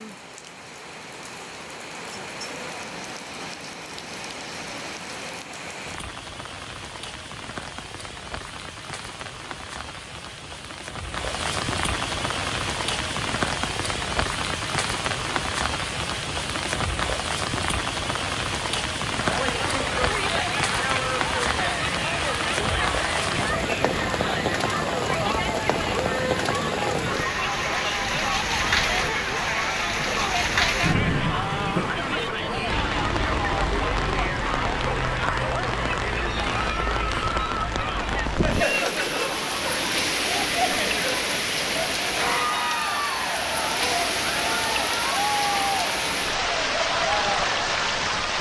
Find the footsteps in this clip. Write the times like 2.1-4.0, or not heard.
not heard.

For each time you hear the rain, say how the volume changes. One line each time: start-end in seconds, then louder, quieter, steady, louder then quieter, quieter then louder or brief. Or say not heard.
0.0-48.3 louder.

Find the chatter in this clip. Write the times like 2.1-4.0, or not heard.
19.2-48.3.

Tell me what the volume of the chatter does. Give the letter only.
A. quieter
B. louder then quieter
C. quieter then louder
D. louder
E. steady
E.